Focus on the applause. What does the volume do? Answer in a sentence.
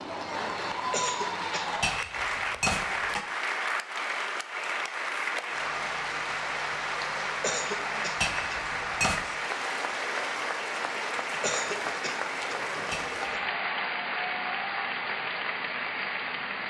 The loudness of the applause stays about the same.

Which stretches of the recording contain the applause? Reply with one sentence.
The applause can be heard from 0.0 to 16.6 s.